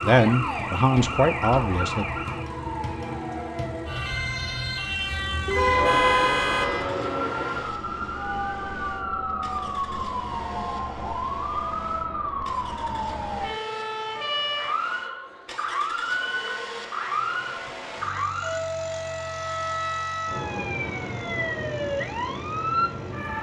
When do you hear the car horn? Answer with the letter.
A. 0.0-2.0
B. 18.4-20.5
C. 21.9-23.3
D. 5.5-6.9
D.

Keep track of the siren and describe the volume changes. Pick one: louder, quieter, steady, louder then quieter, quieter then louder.
steady.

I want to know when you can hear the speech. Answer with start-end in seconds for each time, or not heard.
0.0-2.0.